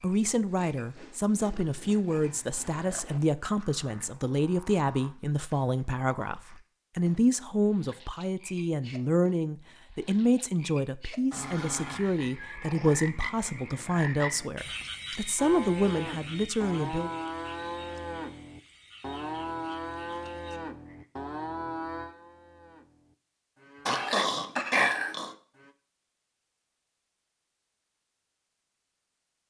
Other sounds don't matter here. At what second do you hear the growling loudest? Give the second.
25 s.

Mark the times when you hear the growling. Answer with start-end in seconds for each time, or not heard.
1.5-4.2, 11.3-13.0, 23.9-25.3.